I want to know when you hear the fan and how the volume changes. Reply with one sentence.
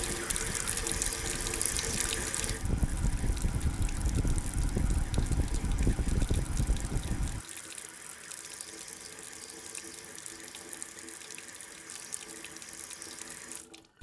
The fan can be heard from 0.0 to 7.5 s, getting louder.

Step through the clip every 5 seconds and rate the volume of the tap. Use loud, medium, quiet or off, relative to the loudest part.
loud, medium, medium.